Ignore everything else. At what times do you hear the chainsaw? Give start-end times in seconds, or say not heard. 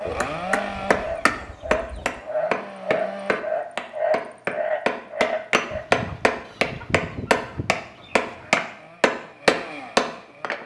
0.0-3.4, 8.1-10.6.